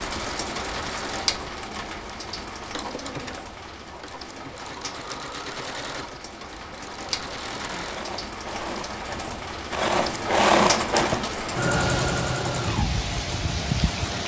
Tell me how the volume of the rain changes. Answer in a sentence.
The volume of the rain goes down, then up.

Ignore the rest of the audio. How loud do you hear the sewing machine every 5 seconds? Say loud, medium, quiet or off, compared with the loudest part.
quiet, medium, loud.